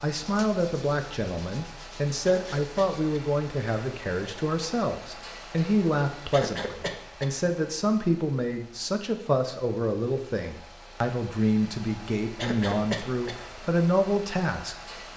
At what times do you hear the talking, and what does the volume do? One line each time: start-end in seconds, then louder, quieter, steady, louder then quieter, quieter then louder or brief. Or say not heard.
0.0-15.1 steady.